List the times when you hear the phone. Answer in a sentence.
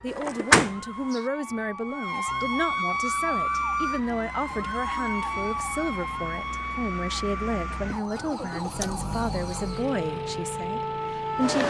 You can't hear the phone here.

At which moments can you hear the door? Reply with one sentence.
The door can be heard from 0.1 to 1.2 s.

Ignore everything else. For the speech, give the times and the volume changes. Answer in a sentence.
The speech can be heard from 0.0 to 11.6 s, at a steady volume.